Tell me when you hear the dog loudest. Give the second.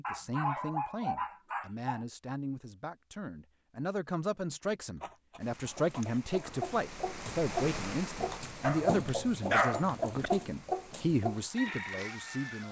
10 s.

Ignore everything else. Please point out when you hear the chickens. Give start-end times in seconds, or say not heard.
5.7-12.6.